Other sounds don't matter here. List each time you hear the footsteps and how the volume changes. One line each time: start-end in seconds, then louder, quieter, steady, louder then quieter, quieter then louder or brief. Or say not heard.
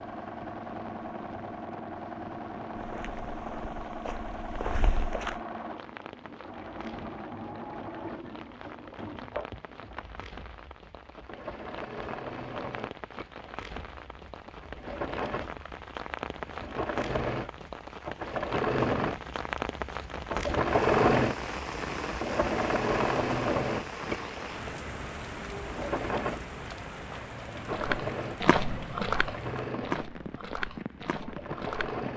2.8-5.4 brief
27.6-32.0 quieter.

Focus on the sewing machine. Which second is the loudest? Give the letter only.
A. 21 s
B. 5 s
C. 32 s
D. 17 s
A.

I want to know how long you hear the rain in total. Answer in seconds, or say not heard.
32 s.